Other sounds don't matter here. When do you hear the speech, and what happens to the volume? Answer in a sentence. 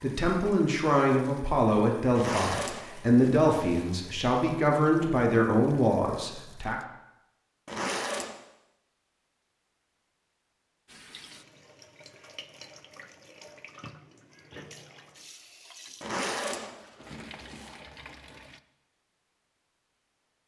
You can hear the speech from 0.0 to 6.8 s, at a steady volume.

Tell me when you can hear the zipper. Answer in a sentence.
You can hear the zipper from 2.1 to 3.9 s, from 7.7 to 8.3 s and from 16.0 to 17.8 s.